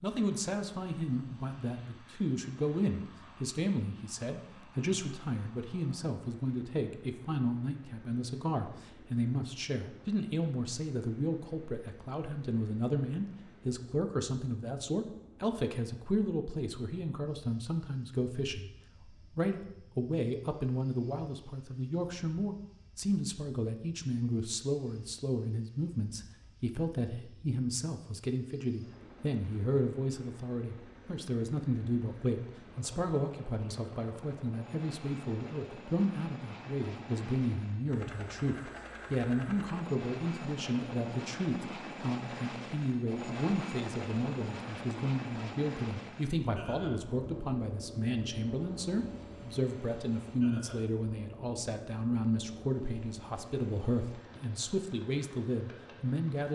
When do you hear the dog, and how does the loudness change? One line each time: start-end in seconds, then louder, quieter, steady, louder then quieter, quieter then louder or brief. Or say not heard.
not heard.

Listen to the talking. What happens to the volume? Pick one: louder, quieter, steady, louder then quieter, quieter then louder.
steady.